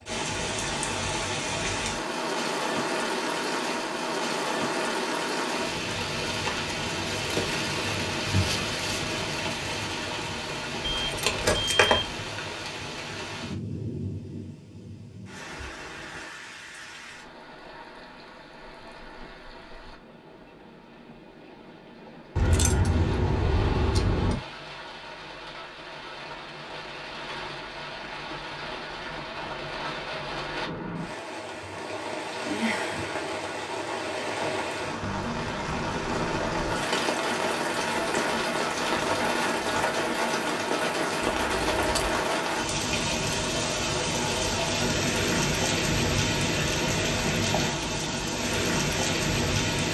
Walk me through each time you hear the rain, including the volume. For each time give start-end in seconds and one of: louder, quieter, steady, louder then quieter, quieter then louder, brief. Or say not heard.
0.0-49.9 quieter then louder.